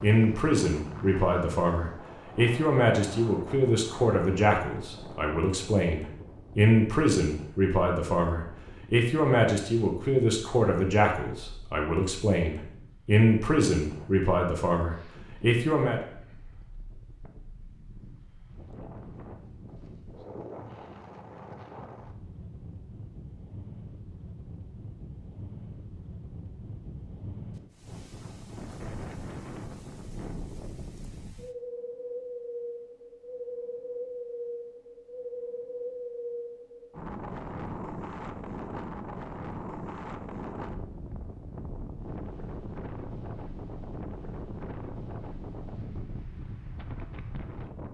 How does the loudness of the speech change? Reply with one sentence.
The loudness of the speech stays about the same.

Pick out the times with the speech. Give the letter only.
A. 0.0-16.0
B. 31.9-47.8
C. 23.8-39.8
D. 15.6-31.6
A.